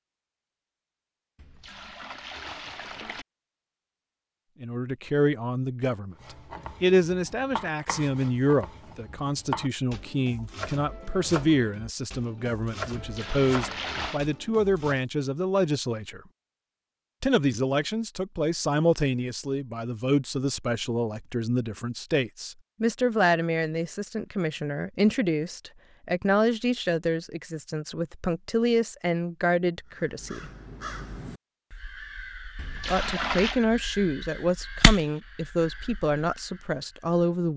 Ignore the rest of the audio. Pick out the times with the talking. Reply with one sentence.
The talking can be heard from 4.6 to 16.2 s, from 17.2 to 30.5 s and from 32.9 to 37.5 s.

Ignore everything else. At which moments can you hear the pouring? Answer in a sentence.
You can hear the pouring from 1.4 to 3.2 s, from 12.9 to 14.2 s and from 32.5 to 33.6 s.